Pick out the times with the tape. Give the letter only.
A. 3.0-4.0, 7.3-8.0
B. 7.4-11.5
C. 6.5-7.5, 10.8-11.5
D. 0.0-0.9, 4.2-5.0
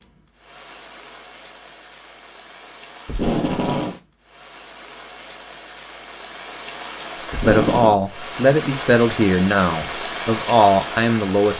A.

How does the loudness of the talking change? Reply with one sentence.
The volume of the talking goes down, then up.